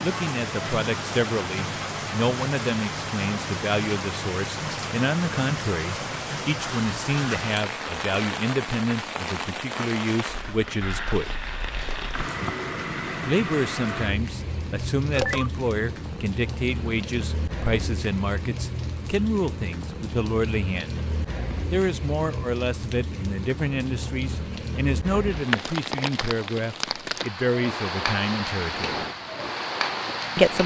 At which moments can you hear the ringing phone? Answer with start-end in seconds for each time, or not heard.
15.1-15.5.